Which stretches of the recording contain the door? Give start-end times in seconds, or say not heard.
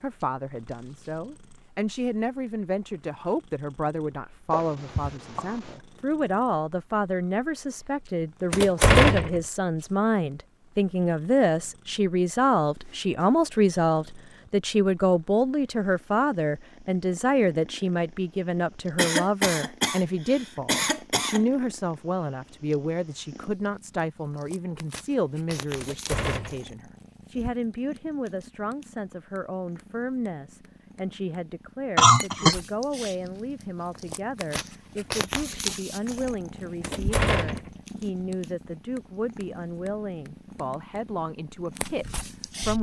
8.5-9.4, 25.8-26.7, 36.8-37.7.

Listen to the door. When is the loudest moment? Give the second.
9 s.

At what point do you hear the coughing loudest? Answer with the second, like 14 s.
32 s.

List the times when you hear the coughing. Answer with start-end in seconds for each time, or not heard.
4.5-5.8, 18.9-21.4, 31.9-32.5.